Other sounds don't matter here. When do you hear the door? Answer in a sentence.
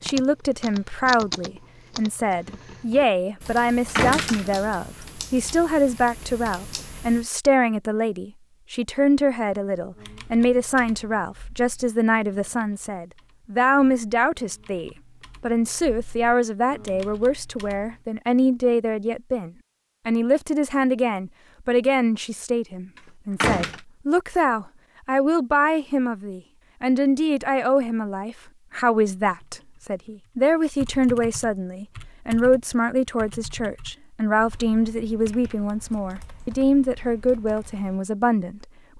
The door can be heard from 4.0 to 4.7 s and from 23.4 to 23.8 s.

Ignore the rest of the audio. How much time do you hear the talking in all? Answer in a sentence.
The talking can be heard for 39 seconds in total.